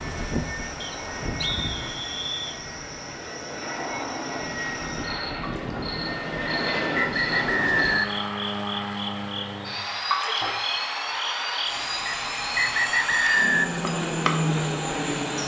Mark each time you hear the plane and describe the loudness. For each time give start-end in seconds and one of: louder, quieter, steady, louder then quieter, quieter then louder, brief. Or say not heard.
0.0-15.4 louder.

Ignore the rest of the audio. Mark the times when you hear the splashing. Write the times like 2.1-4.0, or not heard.
5.4-5.9, 10.1-10.6.